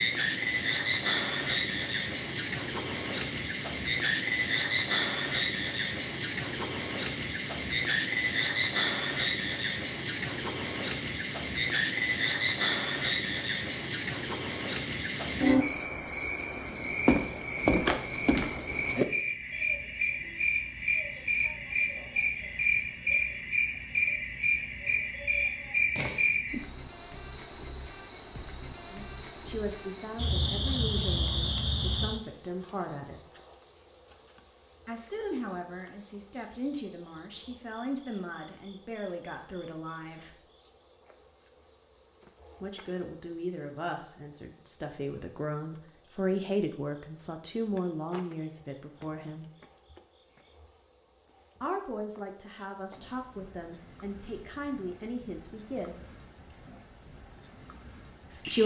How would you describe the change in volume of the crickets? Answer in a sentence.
The loudness of the crickets goes down.